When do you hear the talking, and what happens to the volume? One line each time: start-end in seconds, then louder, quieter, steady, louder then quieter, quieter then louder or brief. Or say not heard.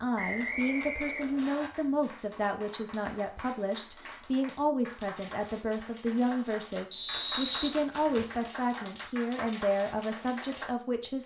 0.0-11.2 steady.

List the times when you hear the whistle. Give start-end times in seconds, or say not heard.
0.1-1.7, 6.9-8.4.